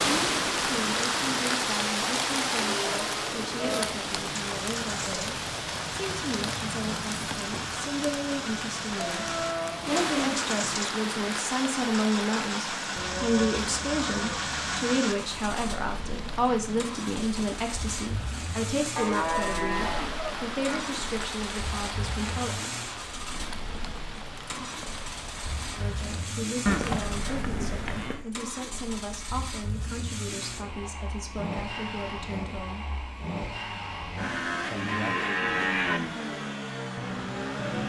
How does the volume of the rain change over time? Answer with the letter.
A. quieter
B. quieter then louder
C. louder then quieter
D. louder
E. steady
A.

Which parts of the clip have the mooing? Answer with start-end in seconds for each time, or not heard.
2.5-3.9, 8.9-10.5, 12.9-14.7, 18.9-20.8, 26.6-28.2, 34.7-36.0.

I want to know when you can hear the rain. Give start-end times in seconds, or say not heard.
0.0-26.4.